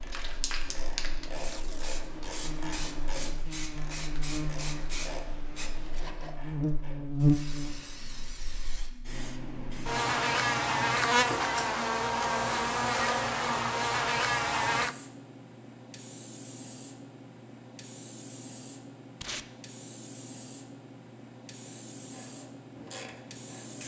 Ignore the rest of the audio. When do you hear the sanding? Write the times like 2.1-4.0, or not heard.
not heard.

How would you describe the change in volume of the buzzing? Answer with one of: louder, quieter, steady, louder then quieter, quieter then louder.
louder.